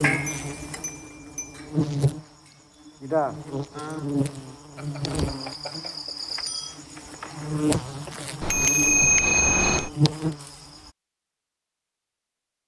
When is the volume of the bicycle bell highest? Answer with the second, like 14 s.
9 s.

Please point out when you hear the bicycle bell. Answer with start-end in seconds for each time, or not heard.
0.2-1.6, 4.8-6.8, 8.4-9.9.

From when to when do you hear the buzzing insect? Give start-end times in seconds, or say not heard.
0.0-10.9.